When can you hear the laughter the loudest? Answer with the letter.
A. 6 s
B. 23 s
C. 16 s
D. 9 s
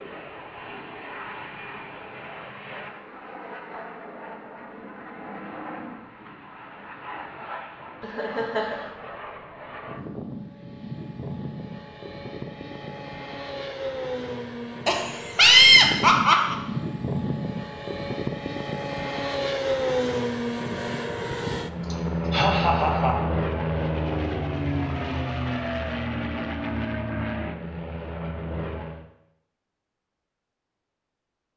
C.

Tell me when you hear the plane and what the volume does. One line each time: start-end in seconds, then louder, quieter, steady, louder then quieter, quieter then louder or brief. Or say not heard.
0.0-29.1 louder.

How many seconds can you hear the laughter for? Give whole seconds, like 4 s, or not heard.
4 s.